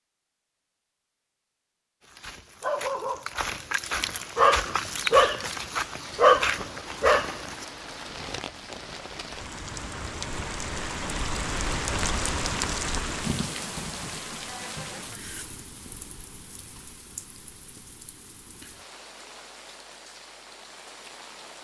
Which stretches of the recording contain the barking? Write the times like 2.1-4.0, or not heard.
2.1-7.7.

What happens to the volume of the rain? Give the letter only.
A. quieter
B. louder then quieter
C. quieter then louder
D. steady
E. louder
B.